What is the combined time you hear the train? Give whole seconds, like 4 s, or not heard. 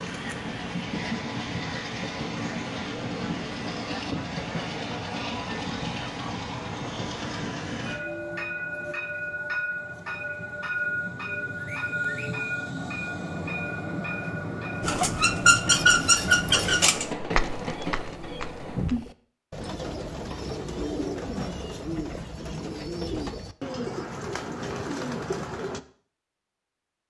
19 s.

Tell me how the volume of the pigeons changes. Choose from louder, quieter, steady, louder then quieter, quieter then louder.
quieter.